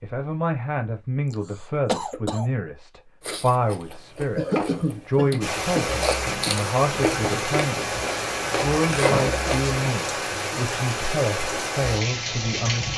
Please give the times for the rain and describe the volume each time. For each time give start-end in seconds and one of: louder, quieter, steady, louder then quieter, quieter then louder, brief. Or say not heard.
5.4-12.9 steady.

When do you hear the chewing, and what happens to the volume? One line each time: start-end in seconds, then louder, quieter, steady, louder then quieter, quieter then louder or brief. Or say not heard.
3.2-9.8 quieter then louder.